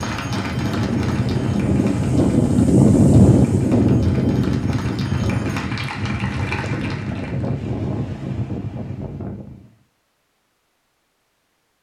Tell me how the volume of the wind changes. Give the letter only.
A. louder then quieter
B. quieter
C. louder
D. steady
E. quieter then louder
A.